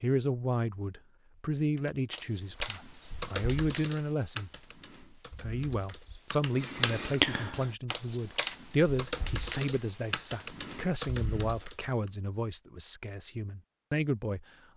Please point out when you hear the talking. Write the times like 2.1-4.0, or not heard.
0.0-4.5, 5.4-14.4.